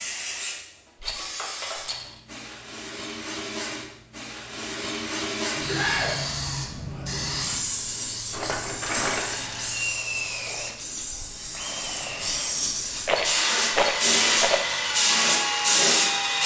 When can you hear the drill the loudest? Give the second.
16 s.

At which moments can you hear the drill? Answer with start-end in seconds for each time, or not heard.
8.8-16.4.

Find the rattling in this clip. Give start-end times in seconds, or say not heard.
1.0-2.2, 8.3-9.4, 13.1-14.7.